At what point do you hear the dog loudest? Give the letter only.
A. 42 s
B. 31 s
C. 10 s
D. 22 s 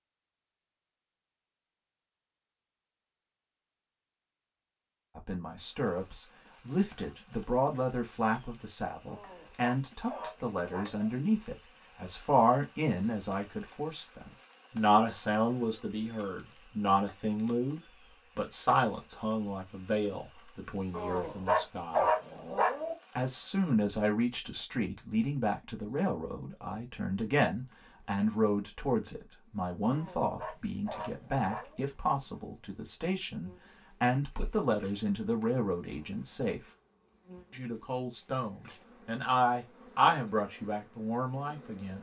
D.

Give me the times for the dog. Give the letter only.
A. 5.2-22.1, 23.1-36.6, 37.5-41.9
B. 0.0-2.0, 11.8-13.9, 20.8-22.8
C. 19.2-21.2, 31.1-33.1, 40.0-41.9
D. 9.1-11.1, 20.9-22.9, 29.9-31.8
D.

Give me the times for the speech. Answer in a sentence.
You can hear the speech from 5.2 to 22.1 s, from 23.1 to 36.6 s and from 37.5 to 41.9 s.